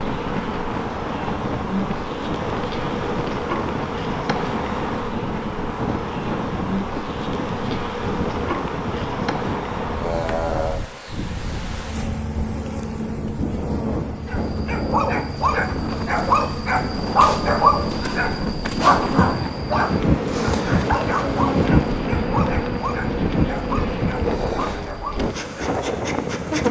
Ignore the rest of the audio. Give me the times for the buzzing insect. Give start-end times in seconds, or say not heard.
0.0-26.6.